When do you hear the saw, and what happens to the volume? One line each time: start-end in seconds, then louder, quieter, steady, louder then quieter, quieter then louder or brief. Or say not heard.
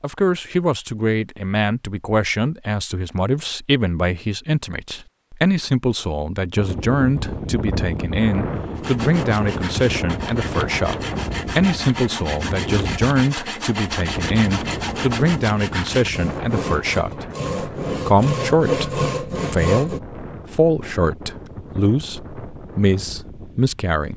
8.8-20.0 louder.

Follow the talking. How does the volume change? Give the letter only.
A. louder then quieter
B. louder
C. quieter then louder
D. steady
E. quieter
D.